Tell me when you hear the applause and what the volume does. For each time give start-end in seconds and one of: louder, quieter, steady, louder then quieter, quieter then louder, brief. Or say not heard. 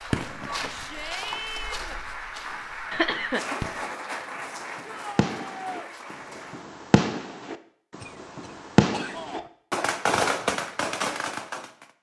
0.0-6.7 louder then quieter.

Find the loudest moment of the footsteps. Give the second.
1 s.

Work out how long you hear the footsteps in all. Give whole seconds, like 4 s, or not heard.
3 s.